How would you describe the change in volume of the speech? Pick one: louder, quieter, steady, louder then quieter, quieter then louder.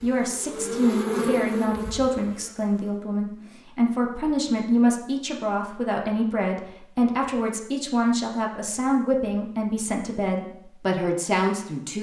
steady.